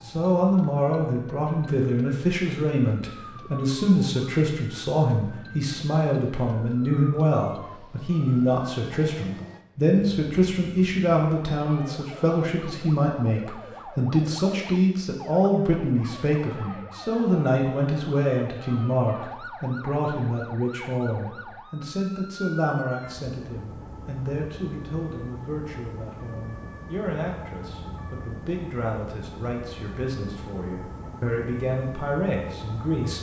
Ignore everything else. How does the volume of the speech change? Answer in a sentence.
The loudness of the speech goes down.